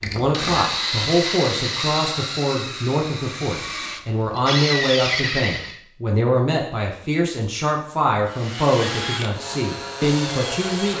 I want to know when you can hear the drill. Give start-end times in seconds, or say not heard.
0.0-5.8, 8.2-10.9.